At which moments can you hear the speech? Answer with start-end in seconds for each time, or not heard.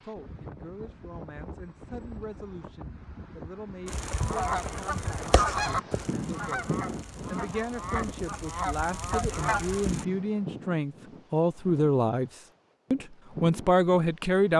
0.0-12.3, 12.9-14.5.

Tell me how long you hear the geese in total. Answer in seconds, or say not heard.
6 s.